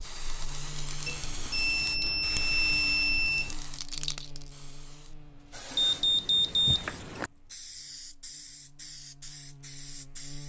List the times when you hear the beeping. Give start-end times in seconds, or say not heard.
1.1-3.5, 5.8-7.3.